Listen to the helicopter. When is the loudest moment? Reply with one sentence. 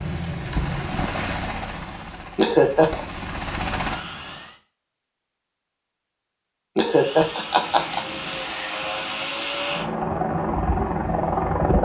The loudest moment of the helicopter is at 11 seconds.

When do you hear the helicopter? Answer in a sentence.
The helicopter can be heard from 0.0 to 4.5 s and from 6.8 to 11.7 s.